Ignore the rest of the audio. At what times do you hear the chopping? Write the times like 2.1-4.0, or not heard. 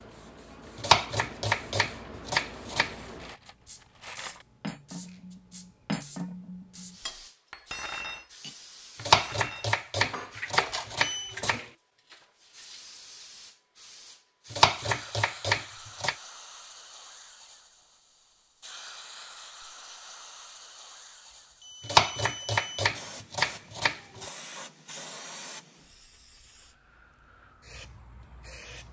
0.8-3.0, 9.0-11.7, 14.5-16.1, 21.8-24.3.